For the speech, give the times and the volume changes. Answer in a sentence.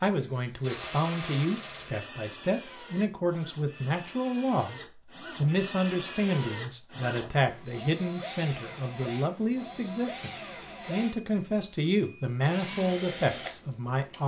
The speech can be heard from 0.0 to 14.2 s, at a steady volume.